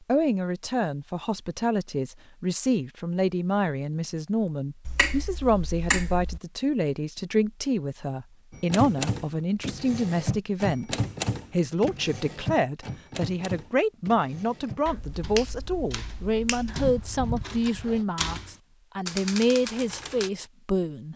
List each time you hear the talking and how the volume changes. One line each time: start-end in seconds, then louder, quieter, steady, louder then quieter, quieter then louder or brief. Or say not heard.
0.1-21.1 steady.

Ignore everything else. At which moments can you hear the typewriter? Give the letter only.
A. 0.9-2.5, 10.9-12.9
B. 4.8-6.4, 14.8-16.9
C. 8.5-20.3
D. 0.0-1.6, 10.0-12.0
C.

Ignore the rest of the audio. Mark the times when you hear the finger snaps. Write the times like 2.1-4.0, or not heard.
4.8-6.4, 14.8-16.9.